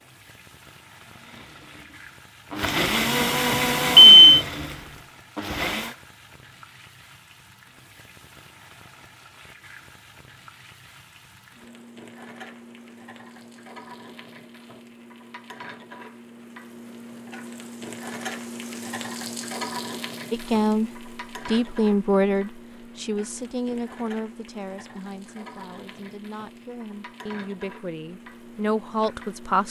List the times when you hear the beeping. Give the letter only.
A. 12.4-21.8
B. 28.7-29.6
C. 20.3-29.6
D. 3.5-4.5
D.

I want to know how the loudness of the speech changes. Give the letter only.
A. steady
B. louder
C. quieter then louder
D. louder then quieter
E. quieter
C.